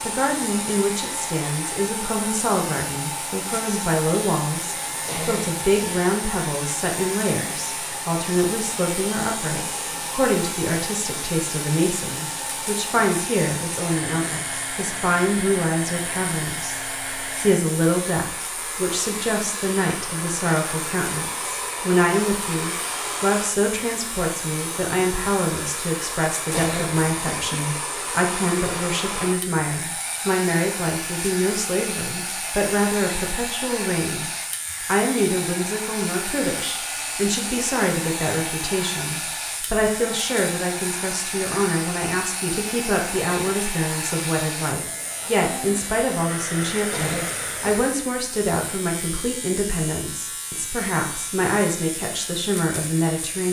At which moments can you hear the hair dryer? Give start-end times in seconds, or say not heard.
0.0-47.9.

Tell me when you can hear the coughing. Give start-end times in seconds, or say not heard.
5.0-6.0, 26.5-27.6, 46.9-47.9.